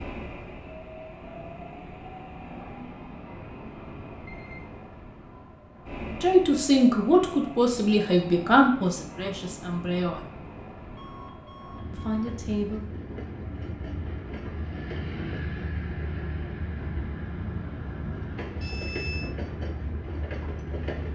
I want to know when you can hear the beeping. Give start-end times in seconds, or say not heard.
4.2-4.8, 10.9-12.4, 18.6-19.4.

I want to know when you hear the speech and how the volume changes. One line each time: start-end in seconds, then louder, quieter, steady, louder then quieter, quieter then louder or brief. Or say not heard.
6.1-10.2 quieter
11.9-12.9 brief.